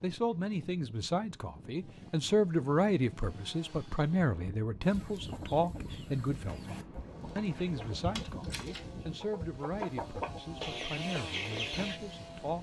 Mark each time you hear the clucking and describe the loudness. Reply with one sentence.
The clucking can be heard from 4.8 to 12.0 s, getting louder.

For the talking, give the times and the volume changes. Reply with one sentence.
You can hear the talking from 0.0 to 12.5 s, getting quieter.